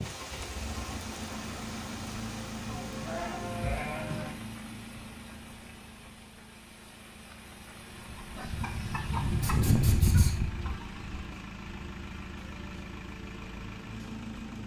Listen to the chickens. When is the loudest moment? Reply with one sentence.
The volume of the chickens peaks at 10 seconds.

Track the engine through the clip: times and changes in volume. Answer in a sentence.
You can hear the engine from 0.0 to 14.6 s, getting quieter then louder.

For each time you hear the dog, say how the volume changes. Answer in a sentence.
The dog can't be heard in this clip.